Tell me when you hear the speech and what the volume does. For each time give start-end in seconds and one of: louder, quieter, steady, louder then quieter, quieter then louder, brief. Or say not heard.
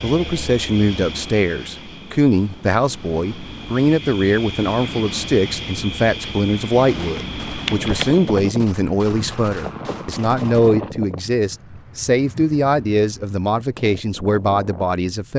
0.0-15.3 steady.